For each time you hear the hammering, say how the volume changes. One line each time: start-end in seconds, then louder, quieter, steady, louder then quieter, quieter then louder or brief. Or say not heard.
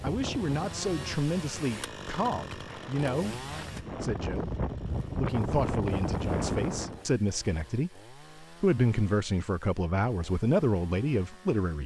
not heard.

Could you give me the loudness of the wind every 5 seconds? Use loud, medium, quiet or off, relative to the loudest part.
medium, loud, off.